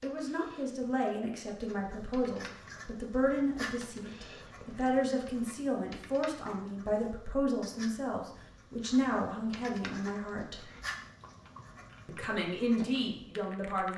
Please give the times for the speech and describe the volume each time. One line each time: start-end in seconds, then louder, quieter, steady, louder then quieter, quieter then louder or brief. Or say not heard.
0.0-10.7 steady
12.1-13.9 brief.